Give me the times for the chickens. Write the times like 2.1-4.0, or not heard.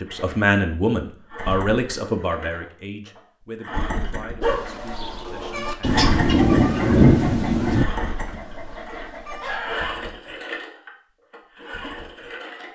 4.4-9.9.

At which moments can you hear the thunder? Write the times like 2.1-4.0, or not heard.
5.8-7.8.